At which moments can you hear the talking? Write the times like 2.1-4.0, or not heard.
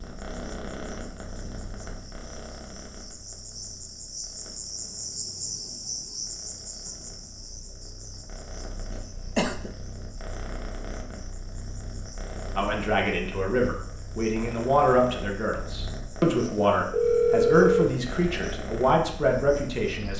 12.6-20.1.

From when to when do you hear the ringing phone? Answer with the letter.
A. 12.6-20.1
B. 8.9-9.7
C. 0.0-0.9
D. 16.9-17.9
D.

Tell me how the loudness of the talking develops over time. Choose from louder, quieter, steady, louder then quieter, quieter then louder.
steady.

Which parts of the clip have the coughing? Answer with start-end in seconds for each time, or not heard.
8.9-9.7.